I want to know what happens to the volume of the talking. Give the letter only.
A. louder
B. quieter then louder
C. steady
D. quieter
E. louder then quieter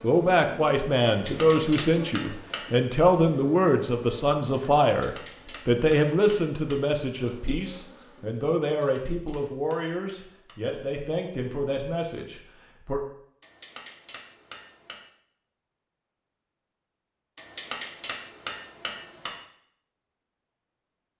D.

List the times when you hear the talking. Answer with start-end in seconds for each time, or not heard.
0.0-13.0.